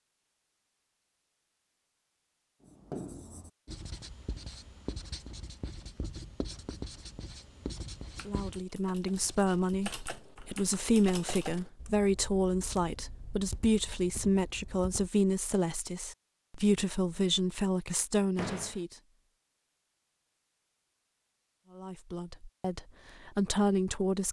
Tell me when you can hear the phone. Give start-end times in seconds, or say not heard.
not heard.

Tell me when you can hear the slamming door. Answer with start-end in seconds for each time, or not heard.
18.4-18.8.